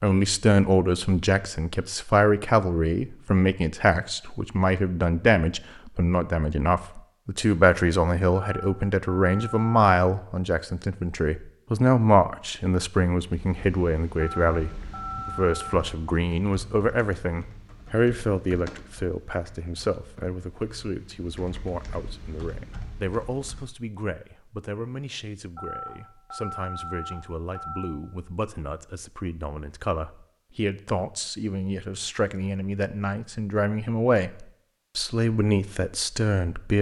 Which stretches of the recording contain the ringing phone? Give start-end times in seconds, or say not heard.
8.3-9.7, 14.2-15.8, 25.6-28.0.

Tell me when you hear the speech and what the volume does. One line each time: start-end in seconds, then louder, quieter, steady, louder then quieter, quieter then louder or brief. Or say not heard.
0.0-36.7 quieter then louder.